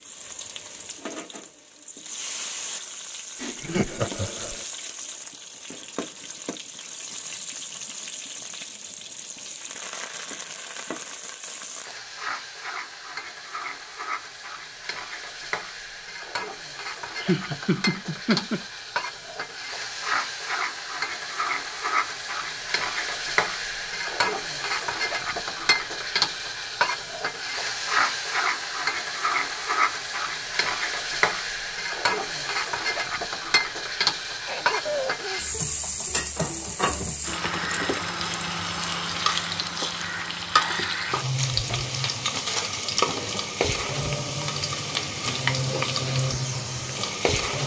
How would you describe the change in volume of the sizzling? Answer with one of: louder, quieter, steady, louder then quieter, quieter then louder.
louder.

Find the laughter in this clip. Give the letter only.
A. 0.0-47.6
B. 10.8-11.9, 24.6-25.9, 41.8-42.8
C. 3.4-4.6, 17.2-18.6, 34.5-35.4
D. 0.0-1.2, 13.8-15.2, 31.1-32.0
C.